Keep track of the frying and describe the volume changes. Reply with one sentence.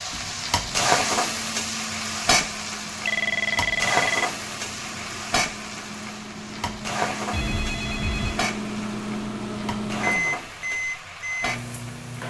The volume of the frying goes down.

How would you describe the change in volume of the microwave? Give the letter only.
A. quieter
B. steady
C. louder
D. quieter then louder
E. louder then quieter
C.